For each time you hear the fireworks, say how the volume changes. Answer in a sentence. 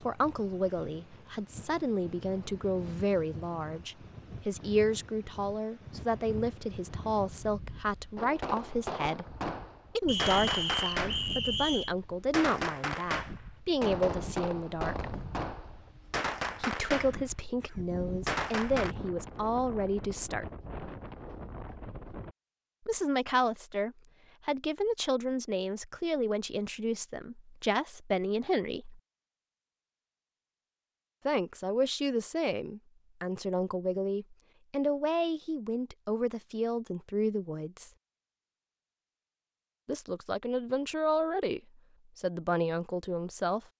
The fireworks can be heard from 8.2 to 18.9 s, at a steady volume.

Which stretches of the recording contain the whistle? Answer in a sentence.
You can hear the whistle from 10.1 to 11.9 s.